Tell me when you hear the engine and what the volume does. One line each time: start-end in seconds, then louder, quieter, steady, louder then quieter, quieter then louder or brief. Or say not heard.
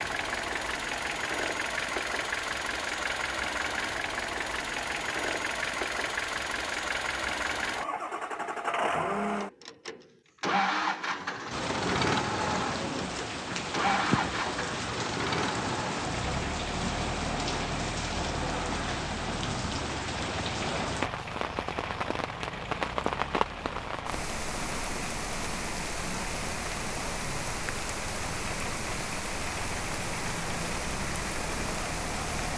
0.0-32.5 quieter.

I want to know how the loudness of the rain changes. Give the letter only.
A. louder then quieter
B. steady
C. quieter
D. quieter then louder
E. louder
B.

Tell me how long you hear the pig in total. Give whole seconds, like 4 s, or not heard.
not heard.